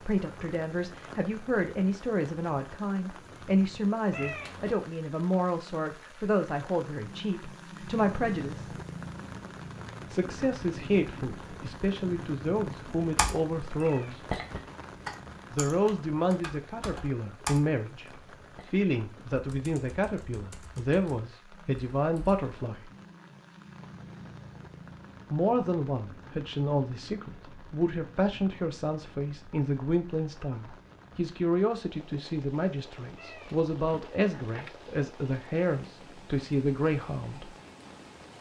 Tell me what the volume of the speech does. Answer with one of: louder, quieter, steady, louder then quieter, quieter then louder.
steady.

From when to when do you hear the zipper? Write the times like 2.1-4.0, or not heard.
not heard.